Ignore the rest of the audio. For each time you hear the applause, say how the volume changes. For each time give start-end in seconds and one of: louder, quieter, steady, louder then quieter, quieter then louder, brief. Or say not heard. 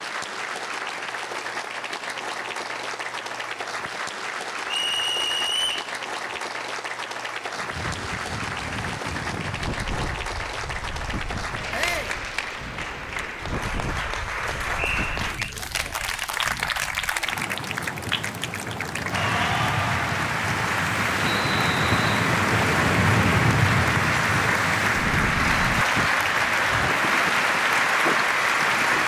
0.0-29.0 louder.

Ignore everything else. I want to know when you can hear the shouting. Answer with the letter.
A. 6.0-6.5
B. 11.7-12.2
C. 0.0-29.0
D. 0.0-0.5
B.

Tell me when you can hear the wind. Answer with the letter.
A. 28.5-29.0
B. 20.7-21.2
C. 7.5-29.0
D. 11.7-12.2
C.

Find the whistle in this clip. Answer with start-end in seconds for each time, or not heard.
4.7-5.9, 14.8-15.6, 21.2-22.1.